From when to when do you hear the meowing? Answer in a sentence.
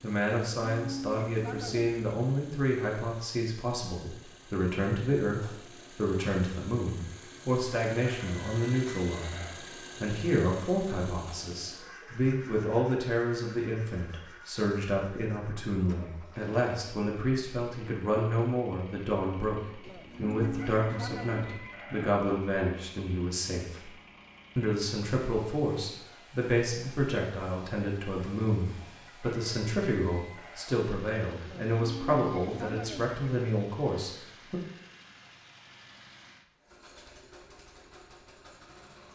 The meowing can't be heard in this clip.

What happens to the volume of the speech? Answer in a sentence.
The loudness of the speech stays about the same.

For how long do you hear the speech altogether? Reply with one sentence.
You can hear the speech for 34 seconds altogether.